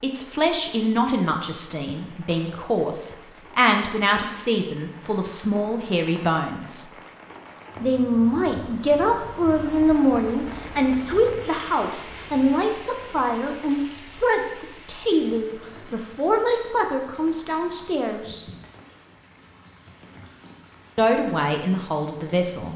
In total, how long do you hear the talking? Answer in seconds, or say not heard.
19 s.